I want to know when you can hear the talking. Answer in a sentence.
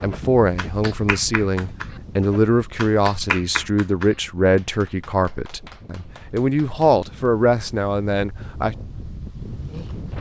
The talking can be heard from 0.0 to 8.8 s.